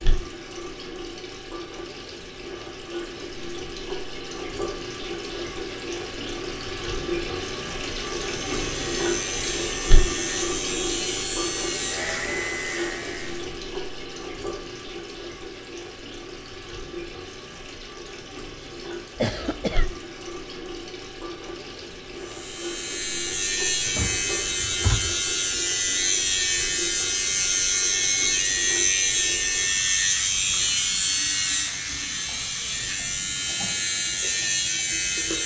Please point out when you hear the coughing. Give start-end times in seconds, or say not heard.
19.1-19.9.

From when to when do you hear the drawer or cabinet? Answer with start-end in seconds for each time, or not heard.
23.9-25.1.